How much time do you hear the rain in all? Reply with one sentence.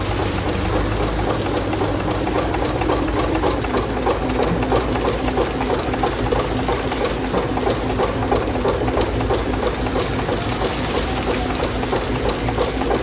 The rain can be heard for 13 seconds in total.